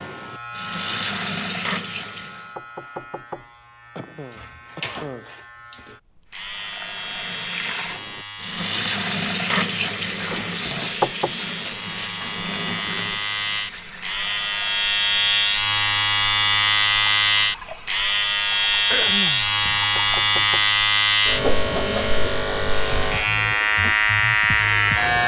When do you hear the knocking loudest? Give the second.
11 s.